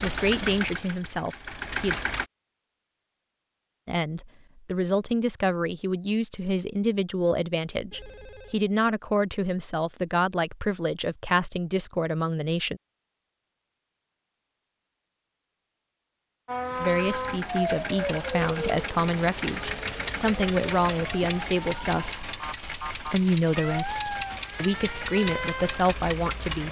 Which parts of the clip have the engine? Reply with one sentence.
You can hear the engine from 0.0 to 2.2 s and from 16.7 to 26.6 s.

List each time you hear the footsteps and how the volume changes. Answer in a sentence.
The footsteps can't be heard in this clip.